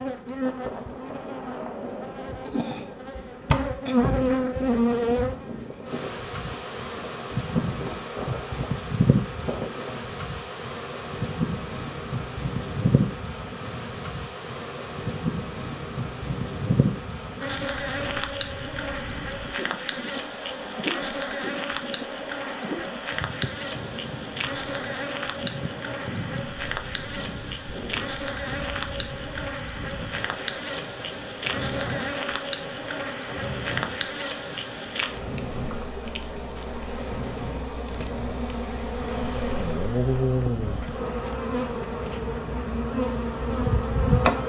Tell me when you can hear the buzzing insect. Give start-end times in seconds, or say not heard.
0.0-44.4.